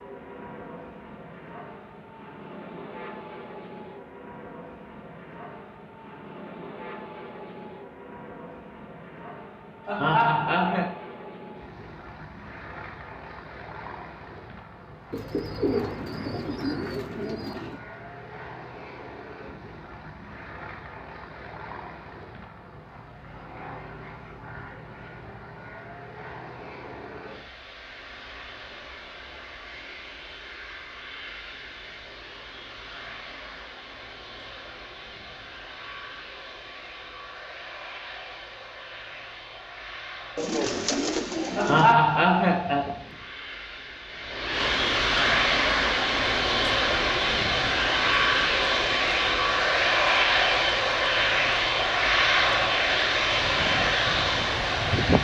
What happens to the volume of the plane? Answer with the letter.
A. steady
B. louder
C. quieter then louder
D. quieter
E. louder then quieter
B.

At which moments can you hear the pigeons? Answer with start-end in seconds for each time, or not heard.
15.1-17.8, 40.4-42.0.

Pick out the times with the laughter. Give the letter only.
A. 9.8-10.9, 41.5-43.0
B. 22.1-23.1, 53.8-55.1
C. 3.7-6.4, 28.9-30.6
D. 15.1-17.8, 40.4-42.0
A.